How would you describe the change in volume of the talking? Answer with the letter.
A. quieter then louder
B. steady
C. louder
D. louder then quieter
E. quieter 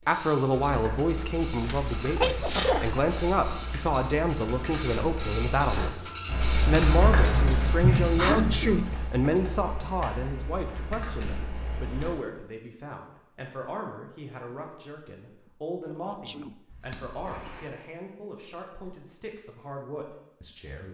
E.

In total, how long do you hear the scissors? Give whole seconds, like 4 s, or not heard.
2 s.